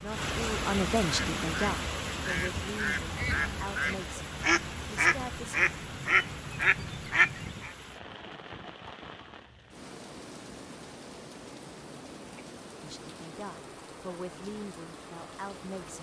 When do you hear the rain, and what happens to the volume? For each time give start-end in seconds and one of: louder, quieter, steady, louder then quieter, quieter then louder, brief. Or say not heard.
0.0-15.9 quieter.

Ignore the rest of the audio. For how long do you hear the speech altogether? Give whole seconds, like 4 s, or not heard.
9 s.